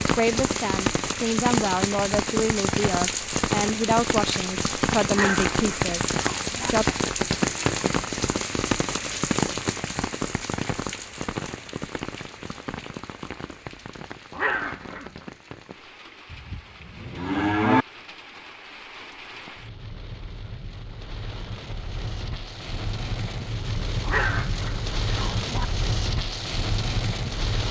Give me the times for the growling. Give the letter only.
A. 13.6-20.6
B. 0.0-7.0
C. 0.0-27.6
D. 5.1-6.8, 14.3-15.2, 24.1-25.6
D.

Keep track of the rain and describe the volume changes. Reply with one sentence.
The volume of the rain goes down, then up.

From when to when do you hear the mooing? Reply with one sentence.
You can hear the mooing from 16.3 to 17.9 s.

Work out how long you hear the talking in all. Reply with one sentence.
The talking can be heard for 7 seconds in total.